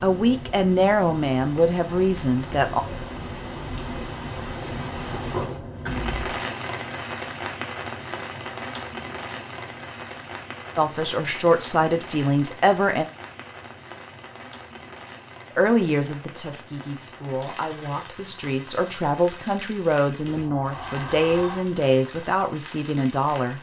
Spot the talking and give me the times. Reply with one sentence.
The talking can be heard from 0.0 to 2.8 s, from 10.8 to 13.1 s and from 15.6 to 23.5 s.